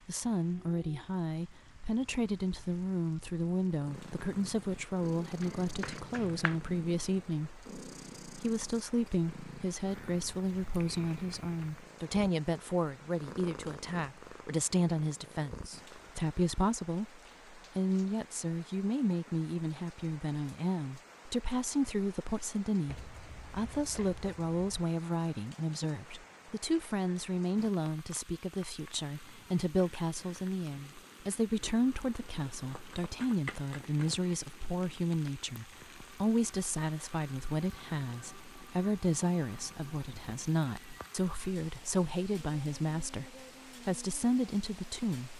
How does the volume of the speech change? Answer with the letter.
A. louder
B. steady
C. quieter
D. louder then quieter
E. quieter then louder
B.